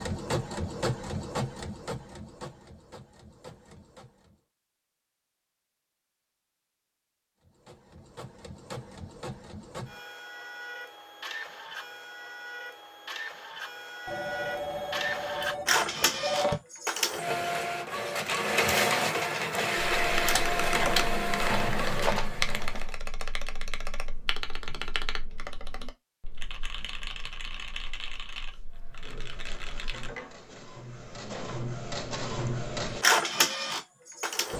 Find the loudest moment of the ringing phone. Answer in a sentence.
The volume of the ringing phone peaks at 16 seconds.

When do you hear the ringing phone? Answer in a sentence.
The ringing phone can be heard from 14.1 to 16.6 s.